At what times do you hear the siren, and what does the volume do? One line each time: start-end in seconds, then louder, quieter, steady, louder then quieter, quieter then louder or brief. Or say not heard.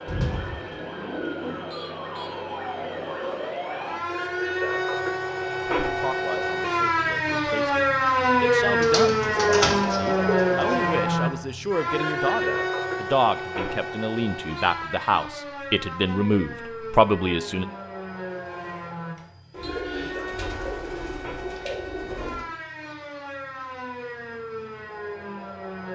0.0-25.8 louder then quieter.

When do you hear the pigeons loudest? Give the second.
10 s.